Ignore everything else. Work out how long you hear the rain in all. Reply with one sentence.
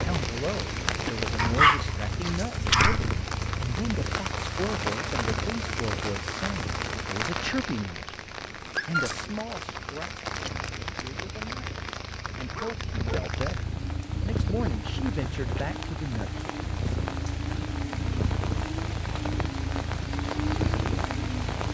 You can hear the rain for 22 seconds altogether.